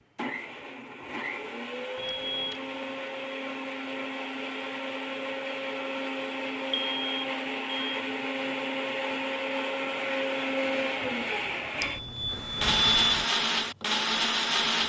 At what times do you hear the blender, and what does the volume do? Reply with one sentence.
You can hear the blender from 0.0 to 14.8 s, getting louder.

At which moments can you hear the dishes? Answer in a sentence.
You can't hear the dishes here.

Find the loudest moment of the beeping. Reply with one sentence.
The loudest moment of the beeping is at 13 seconds.